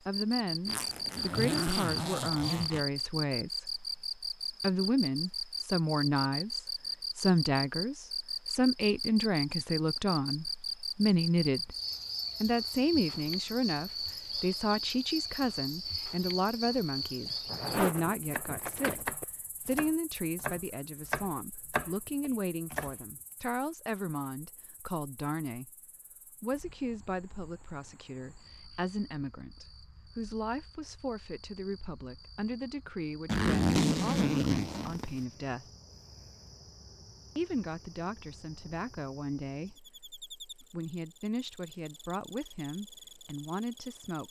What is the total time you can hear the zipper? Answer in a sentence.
You can hear the zipper for 6 seconds altogether.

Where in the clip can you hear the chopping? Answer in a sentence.
You can hear the chopping from 18.2 to 22.9 s.